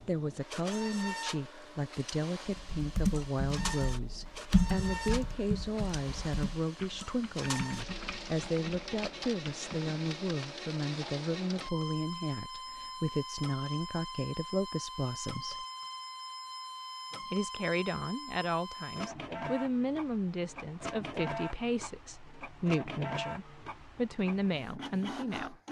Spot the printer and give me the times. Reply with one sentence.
You can hear the printer from 0.0 to 25.6 s.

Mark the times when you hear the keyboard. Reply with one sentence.
The keyboard can be heard from 2.5 to 9.9 s.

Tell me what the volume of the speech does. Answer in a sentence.
The loudness of the speech stays about the same.